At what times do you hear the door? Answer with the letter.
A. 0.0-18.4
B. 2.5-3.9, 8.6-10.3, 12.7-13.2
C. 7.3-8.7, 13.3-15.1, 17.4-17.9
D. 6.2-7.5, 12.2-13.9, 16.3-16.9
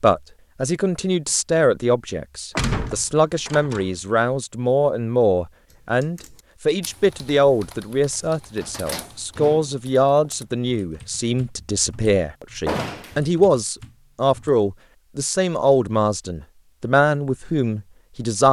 B.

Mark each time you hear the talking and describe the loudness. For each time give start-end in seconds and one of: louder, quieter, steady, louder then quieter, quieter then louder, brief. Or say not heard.
0.0-18.4 steady.